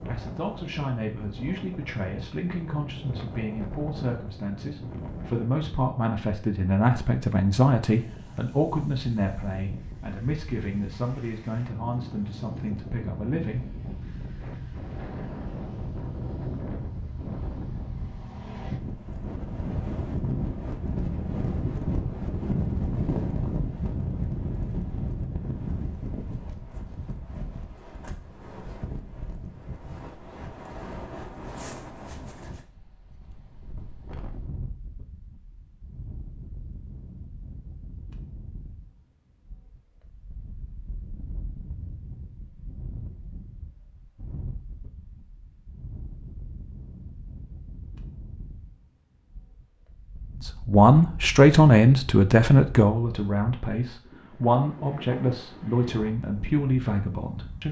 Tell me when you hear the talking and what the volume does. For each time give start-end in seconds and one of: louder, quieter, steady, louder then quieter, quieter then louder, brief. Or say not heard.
0.1-13.7 louder then quieter
50.5-57.6 quieter.